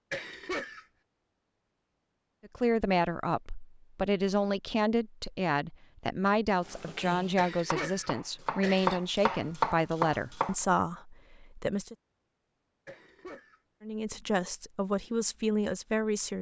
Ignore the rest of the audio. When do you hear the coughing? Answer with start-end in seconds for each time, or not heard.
0.1-0.8, 7.3-9.0, 12.8-13.6.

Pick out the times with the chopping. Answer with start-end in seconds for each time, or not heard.
6.7-10.6.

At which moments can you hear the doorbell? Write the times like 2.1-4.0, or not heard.
not heard.